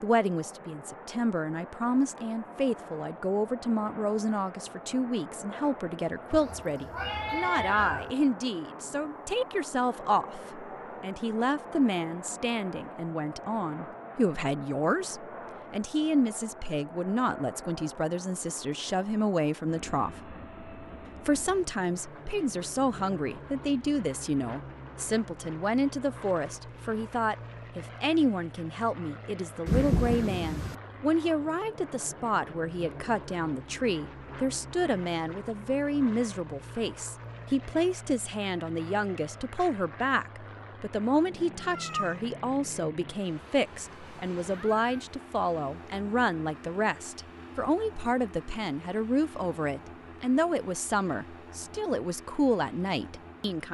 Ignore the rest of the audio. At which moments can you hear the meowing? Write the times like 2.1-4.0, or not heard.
6.3-8.2, 41.6-42.2.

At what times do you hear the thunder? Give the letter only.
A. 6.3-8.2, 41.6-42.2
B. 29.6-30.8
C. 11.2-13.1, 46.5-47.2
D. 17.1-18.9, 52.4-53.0
B.